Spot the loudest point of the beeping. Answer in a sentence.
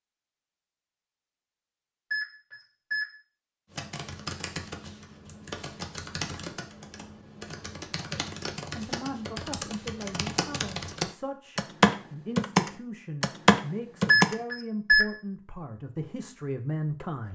The volume of the beeping peaks at 15 seconds.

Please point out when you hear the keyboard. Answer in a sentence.
The keyboard can be heard from 3.7 to 14.3 s.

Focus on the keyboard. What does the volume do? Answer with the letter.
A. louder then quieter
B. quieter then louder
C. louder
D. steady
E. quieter
C.